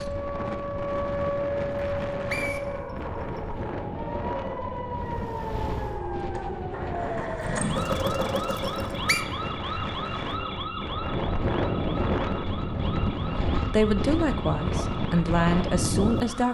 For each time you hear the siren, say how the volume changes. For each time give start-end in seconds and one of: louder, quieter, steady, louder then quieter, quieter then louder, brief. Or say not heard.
0.0-16.4 quieter.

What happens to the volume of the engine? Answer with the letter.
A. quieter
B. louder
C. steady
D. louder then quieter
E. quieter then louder
E.